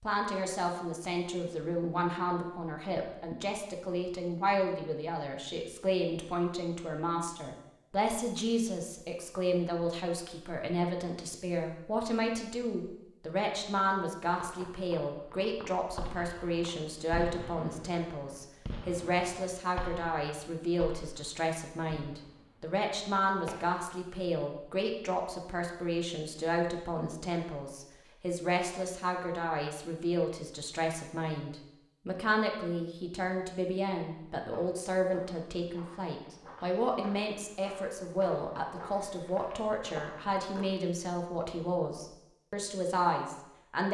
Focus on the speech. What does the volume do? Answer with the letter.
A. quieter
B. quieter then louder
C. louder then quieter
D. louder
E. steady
E.